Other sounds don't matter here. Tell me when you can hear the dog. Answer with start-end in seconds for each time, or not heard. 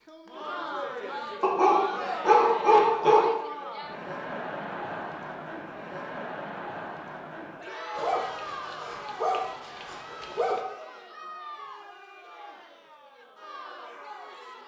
1.4-3.3, 8.0-10.6.